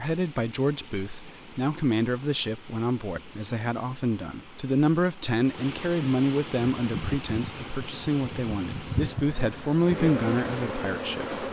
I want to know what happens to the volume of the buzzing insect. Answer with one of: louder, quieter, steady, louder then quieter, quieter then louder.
louder.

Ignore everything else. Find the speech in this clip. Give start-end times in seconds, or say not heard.
0.0-11.3.